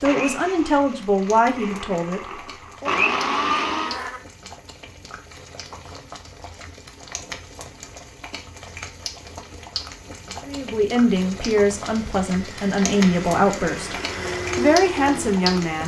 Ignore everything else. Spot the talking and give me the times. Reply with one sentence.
The talking can be heard from 0.0 to 3.0 s, from 10.4 to 13.9 s and from 14.6 to 15.8 s.